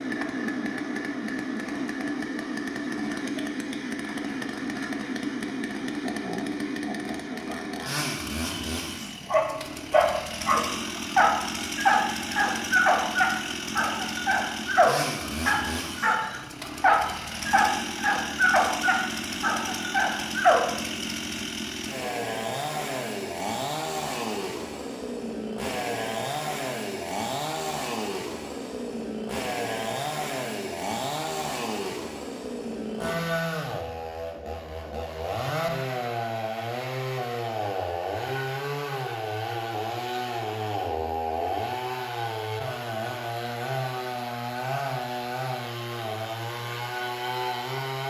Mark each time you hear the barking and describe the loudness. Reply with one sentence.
The barking can be heard from 9.3 to 20.7 s, at a steady volume.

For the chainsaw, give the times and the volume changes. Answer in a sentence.
You can hear the chainsaw from 0.0 to 48.0 s, at a steady volume.